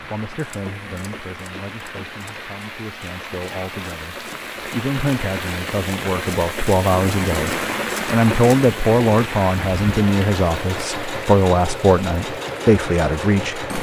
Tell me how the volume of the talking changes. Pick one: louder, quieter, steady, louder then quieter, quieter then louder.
louder.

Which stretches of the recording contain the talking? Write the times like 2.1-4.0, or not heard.
0.1-13.7.